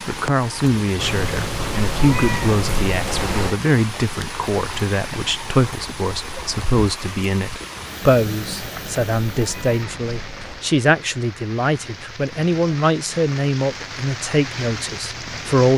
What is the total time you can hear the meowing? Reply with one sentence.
The meowing can be heard for 5 seconds in total.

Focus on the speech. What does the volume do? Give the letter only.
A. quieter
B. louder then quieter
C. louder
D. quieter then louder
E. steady
E.